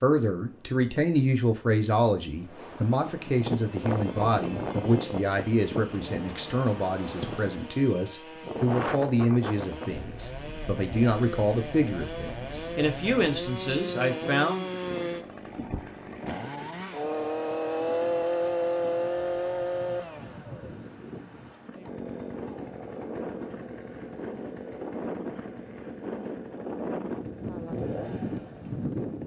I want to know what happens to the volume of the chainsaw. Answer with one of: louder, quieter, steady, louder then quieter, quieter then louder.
louder then quieter.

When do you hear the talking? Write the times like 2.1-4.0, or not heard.
0.0-14.7.